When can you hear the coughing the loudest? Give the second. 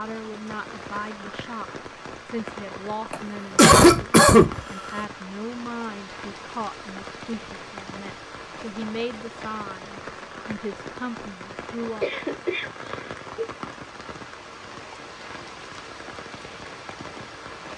4 s.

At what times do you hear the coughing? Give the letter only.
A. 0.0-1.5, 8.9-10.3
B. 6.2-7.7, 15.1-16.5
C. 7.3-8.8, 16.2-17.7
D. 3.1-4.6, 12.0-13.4
D.